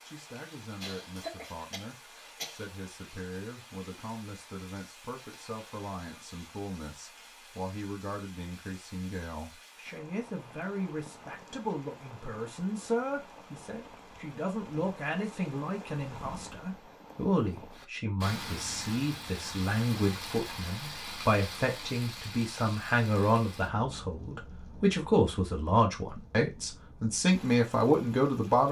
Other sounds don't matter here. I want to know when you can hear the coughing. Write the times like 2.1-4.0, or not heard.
0.8-2.6.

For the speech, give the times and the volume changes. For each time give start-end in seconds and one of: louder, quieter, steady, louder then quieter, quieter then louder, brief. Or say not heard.
0.0-28.6 louder.